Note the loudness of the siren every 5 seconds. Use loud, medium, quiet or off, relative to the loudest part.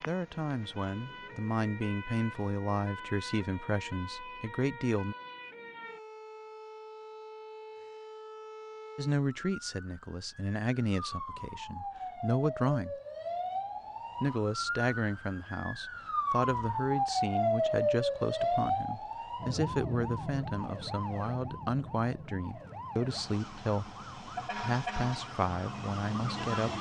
quiet, quiet, medium, loud, medium, medium.